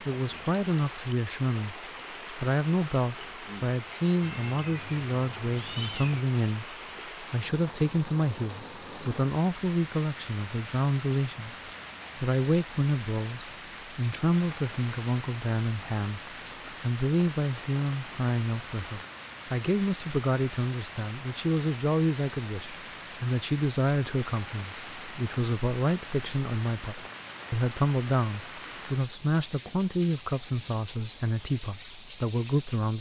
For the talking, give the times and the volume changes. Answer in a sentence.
The talking can be heard from 0.1 to 11.6 s, at a steady volume; and from 12.2 to 32.9 s, at a steady volume.